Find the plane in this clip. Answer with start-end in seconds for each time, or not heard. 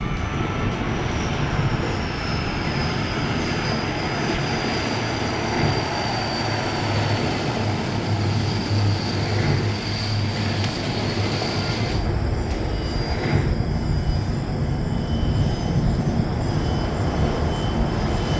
0.0-18.3.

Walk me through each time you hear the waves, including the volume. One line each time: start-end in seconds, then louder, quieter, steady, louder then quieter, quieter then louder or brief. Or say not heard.
0.0-18.3 louder.